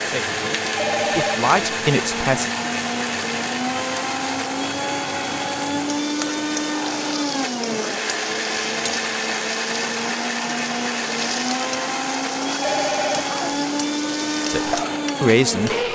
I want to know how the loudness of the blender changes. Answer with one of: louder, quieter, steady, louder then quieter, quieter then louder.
steady.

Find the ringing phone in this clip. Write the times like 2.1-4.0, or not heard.
0.8-1.5, 12.6-13.6.